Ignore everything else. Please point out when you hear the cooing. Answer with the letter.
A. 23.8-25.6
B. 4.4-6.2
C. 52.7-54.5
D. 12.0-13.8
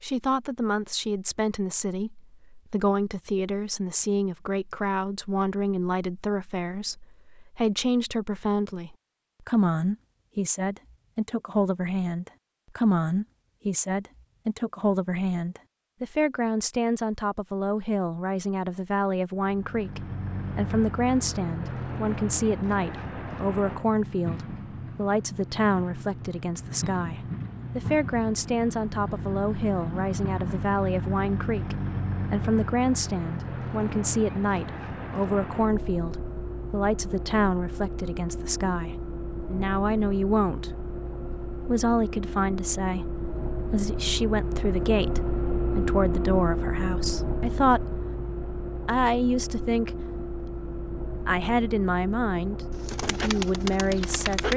C.